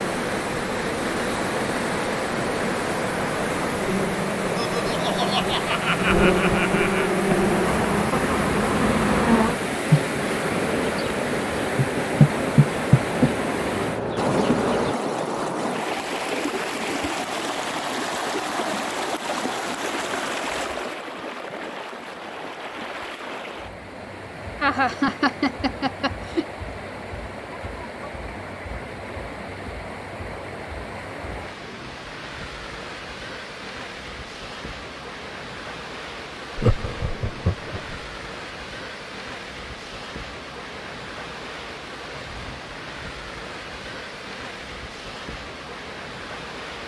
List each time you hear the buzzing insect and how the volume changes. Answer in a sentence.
The buzzing insect can be heard from 0.0 to 14.9 s, getting louder.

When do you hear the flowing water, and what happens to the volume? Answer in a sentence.
You can hear the flowing water from 0.0 to 46.8 s, getting quieter.